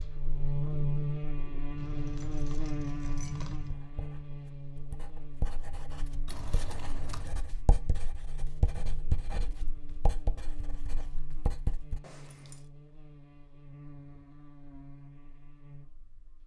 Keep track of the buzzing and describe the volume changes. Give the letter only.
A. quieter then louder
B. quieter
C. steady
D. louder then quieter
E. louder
B.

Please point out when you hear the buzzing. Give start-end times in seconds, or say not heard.
0.0-16.4.